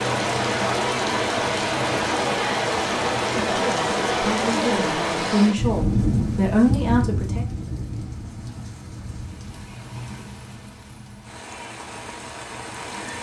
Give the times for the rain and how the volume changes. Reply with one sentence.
The rain can be heard from 0.0 to 13.1 s, getting quieter.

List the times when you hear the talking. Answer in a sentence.
You can hear the talking from 3.5 to 7.5 s.